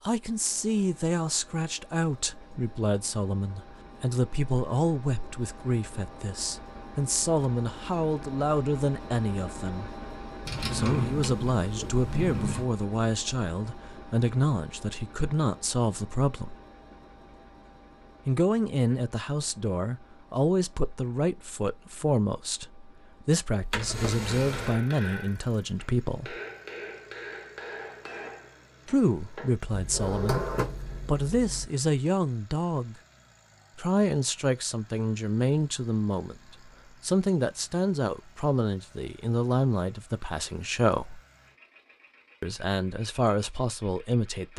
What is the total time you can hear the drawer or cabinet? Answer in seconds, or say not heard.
5 s.